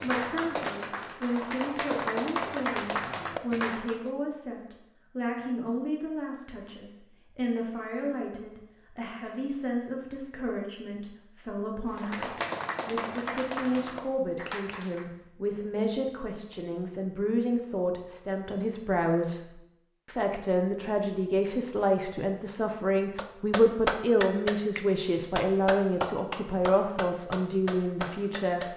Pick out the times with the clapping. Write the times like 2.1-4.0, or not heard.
0.0-4.1, 11.9-15.1, 23.1-28.7.